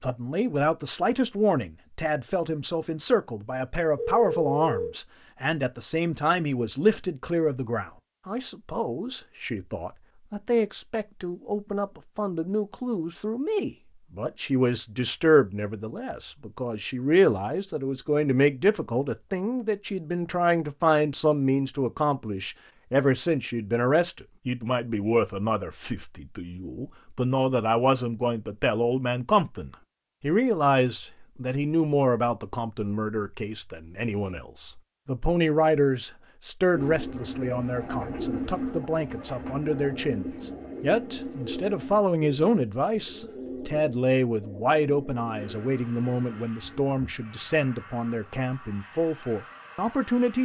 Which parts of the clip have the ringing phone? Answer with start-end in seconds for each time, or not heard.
4.0-5.0.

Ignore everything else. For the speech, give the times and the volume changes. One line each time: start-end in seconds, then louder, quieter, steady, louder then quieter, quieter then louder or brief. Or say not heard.
0.0-50.4 steady.